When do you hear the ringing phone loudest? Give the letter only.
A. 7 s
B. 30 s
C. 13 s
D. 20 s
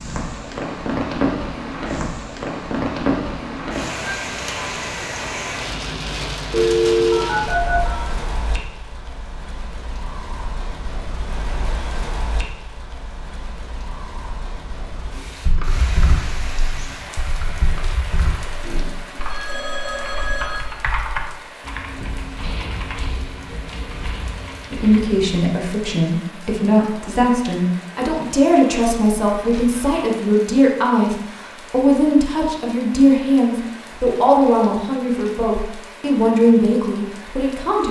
A.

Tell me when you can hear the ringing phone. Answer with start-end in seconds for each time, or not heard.
6.5-8.0, 18.6-20.6, 29.2-30.0.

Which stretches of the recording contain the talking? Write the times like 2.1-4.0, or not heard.
24.7-37.8.